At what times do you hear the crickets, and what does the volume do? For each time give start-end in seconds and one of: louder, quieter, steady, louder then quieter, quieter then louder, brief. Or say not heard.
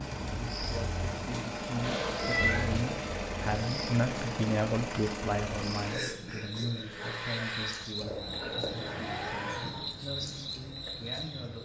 0.0-11.6 steady.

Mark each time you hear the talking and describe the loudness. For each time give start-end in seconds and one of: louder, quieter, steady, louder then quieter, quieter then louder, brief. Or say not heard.
0.1-11.6 louder then quieter.